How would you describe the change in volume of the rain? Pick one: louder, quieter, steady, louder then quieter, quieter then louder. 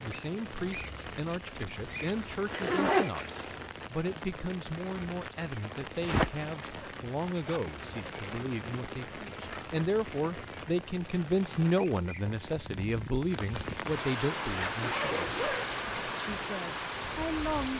louder.